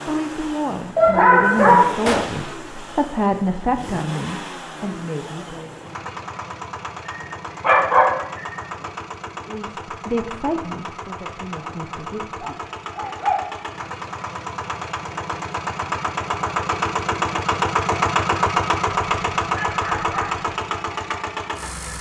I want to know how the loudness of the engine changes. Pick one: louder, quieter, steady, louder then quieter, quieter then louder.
louder.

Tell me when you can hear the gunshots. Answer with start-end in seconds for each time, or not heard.
2.0-2.5.